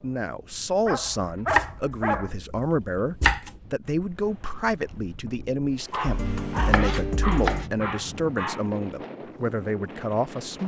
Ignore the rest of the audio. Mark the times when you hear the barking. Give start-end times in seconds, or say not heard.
0.8-2.3, 5.9-8.7.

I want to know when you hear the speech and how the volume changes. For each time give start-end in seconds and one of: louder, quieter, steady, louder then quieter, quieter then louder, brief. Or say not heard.
0.0-10.6 steady.